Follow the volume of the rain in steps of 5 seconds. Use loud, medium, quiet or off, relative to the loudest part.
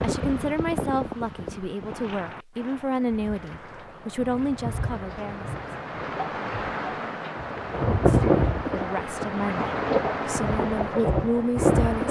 medium, loud, loud.